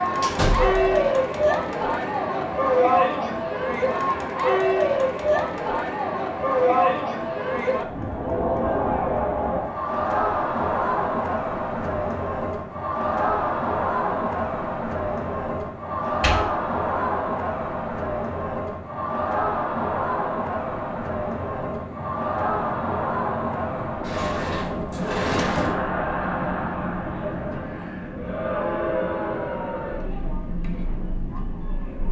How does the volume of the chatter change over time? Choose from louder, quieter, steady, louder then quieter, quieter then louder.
quieter.